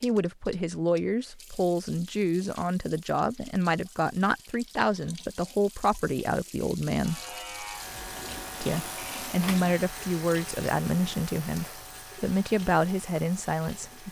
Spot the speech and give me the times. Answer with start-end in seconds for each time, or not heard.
0.0-7.2, 8.6-14.0.